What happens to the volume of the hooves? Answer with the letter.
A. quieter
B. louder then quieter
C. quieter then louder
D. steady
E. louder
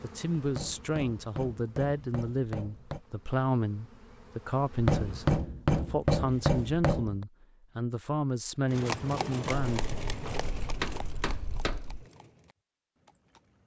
A.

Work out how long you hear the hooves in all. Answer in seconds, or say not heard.
5 s.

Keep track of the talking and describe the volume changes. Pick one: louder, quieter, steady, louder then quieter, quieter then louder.
steady.